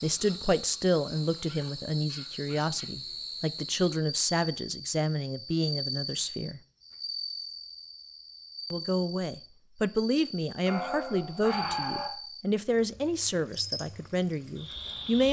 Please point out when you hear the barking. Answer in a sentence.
You can hear the barking from 1.4 to 2.9 s and from 10.7 to 12.1 s.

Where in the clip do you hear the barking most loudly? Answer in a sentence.
The loudest moment of the barking is at 12 seconds.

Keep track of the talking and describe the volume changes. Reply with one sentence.
The loudness of the talking stays about the same.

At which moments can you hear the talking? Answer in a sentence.
You can hear the talking from 0.0 to 6.6 s and from 8.7 to 15.2 s.